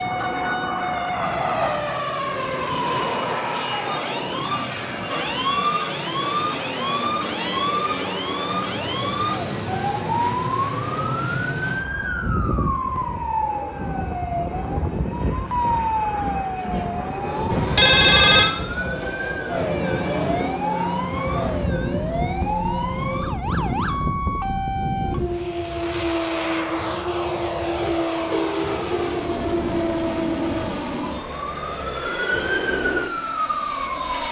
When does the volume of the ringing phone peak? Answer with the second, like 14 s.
18 s.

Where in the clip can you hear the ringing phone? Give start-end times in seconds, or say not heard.
7.3-8.1, 17.5-18.5, 27.8-29.1.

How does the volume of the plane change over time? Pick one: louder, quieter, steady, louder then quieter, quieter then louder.
steady.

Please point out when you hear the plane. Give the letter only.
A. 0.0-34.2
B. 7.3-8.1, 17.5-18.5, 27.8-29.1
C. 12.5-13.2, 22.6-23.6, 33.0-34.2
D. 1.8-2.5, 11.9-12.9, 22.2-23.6
A.